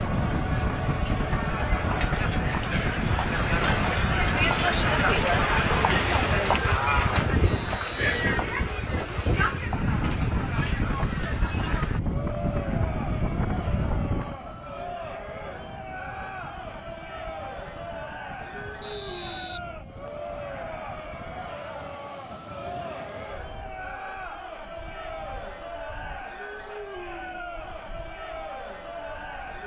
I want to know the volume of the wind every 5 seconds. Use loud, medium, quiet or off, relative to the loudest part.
loud, loud, loud, quiet, quiet, quiet.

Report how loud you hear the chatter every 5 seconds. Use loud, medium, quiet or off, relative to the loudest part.
loud, loud, medium, medium, medium, medium.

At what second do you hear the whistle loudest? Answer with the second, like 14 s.
19 s.